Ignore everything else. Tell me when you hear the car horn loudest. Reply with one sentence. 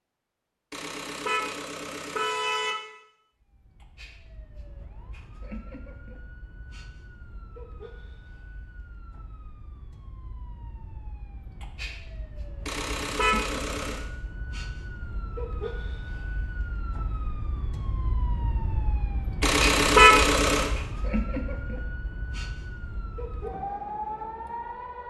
The loudest moment of the car horn is at 20 seconds.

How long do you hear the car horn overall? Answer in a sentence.
You can hear the car horn for 5 seconds altogether.